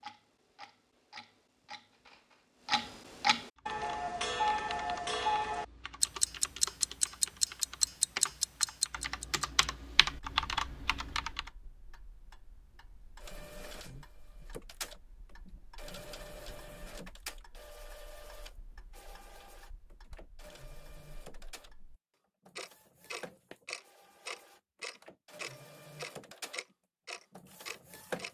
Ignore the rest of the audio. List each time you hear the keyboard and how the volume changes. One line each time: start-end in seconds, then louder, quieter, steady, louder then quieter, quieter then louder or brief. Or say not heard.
3.5-11.5 louder.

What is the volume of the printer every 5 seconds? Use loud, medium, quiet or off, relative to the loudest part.
off, off, loud, loud, medium, loud.